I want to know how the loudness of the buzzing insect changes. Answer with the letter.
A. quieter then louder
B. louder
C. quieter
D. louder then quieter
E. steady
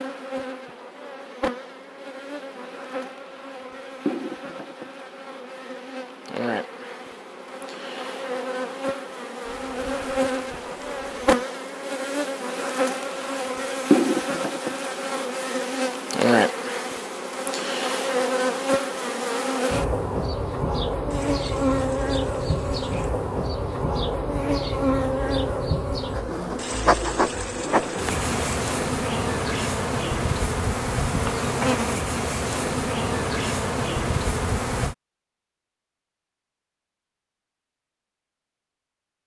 B.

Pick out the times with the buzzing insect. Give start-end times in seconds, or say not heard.
0.0-35.0.